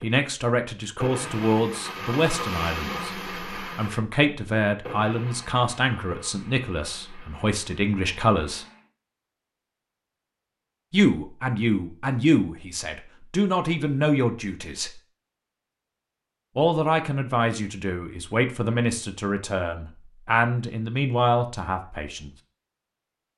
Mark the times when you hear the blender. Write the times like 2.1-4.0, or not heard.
0.0-8.9.